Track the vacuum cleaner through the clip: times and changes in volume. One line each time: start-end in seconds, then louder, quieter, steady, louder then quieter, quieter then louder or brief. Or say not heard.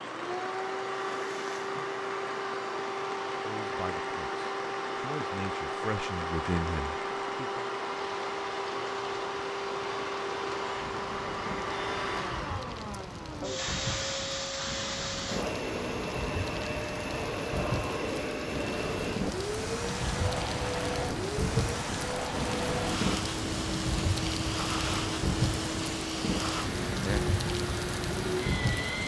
0.0-29.0 steady.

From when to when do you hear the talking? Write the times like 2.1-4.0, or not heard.
3.4-7.7.